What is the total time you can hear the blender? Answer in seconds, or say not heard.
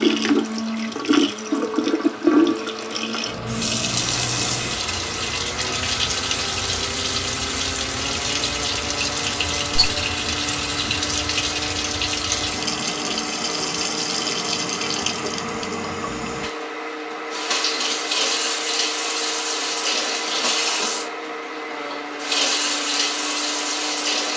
24 s.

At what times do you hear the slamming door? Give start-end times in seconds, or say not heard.
not heard.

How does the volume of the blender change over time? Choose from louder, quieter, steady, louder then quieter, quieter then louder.
steady.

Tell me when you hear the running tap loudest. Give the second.
2 s.